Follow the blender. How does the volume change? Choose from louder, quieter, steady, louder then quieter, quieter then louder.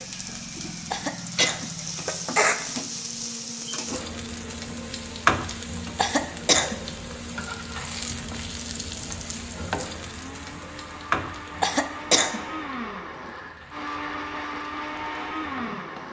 louder.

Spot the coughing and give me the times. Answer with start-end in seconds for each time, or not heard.
0.9-2.5, 6.0-6.8, 11.6-12.4.